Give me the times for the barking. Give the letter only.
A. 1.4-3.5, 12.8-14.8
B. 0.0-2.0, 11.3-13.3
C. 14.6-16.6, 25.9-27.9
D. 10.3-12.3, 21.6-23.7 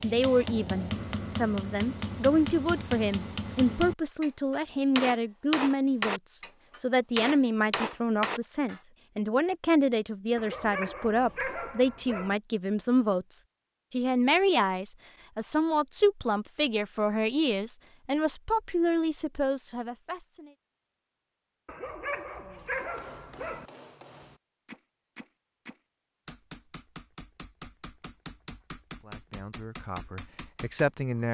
D.